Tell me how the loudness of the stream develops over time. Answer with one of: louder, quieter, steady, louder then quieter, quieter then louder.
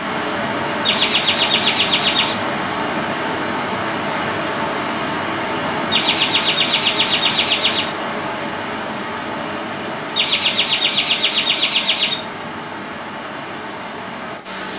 quieter.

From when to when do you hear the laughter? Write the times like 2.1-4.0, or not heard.
0.8-2.4, 5.9-7.9, 10.2-12.2.